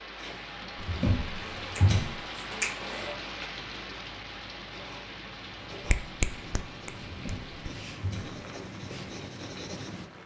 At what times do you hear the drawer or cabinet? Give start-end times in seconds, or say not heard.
0.8-2.2, 7.0-8.4.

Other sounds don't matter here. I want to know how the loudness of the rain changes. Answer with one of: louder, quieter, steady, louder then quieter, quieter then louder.
quieter.